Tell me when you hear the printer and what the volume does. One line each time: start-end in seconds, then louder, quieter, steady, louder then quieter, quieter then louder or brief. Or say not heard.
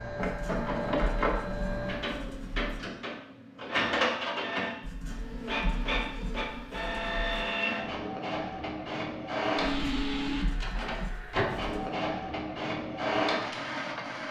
0.0-14.2 steady.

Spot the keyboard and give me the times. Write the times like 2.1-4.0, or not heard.
not heard.